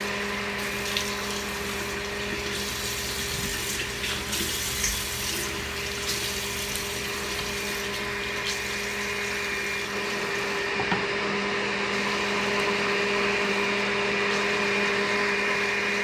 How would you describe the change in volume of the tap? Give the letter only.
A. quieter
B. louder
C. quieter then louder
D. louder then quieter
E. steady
A.